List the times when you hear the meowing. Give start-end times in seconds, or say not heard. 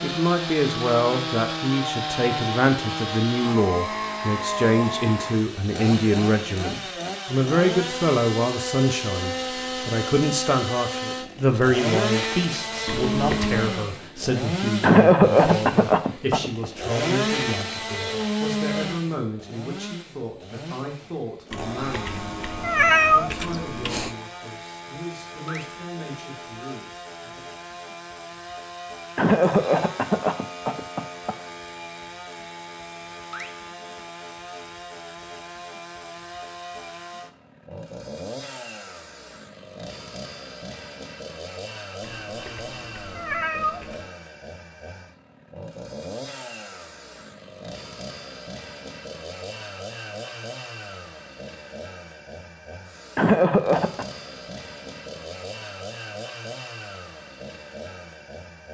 12.8-13.7, 21.5-24.1, 42.0-44.1.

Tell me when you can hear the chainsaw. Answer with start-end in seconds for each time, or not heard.
0.0-58.6.